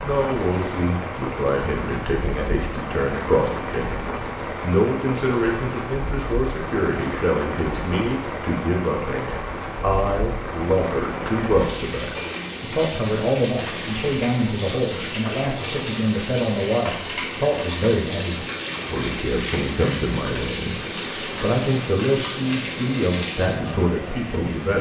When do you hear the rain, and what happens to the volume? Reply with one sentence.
You can hear the rain from 0.0 to 24.7 s, at a steady volume.